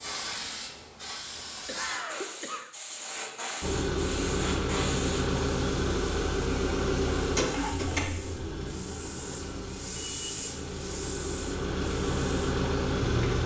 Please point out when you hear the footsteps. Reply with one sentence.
The footsteps can't be heard in this clip.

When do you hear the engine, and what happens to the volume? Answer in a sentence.
The engine can be heard from 3.6 to 13.4 s, getting quieter then louder.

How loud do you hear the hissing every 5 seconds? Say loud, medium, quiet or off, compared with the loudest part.
loud, medium, loud.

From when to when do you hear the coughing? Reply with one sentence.
You can hear the coughing from 1.6 to 2.8 s and from 7.5 to 7.9 s.